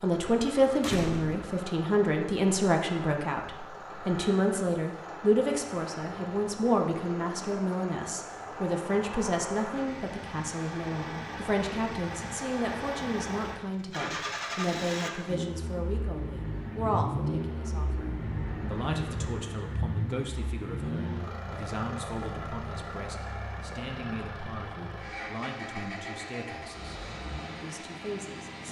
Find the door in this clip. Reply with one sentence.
The door can be heard from 0.8 to 1.6 s.